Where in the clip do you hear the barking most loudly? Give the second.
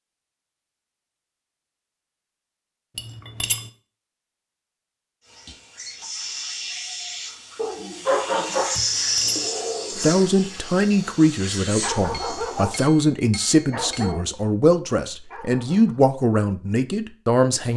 8 s.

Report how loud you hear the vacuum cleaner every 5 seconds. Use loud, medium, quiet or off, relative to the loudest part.
off, loud, medium, off.